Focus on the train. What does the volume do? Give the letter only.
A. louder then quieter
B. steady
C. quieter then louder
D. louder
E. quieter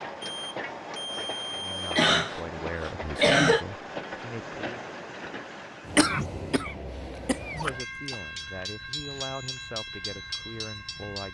B.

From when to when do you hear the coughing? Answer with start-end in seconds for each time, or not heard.
1.9-3.6, 6.0-8.2.